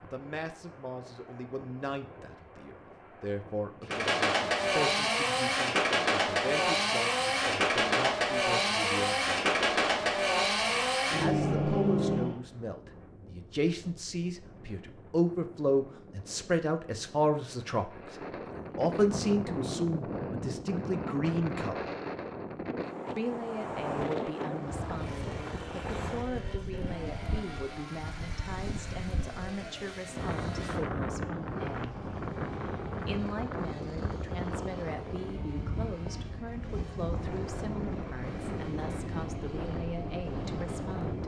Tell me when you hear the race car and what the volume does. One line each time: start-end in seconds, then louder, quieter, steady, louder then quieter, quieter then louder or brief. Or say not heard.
3.8-12.4 steady
24.6-41.2 steady.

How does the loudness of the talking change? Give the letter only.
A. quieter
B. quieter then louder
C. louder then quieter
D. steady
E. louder
C.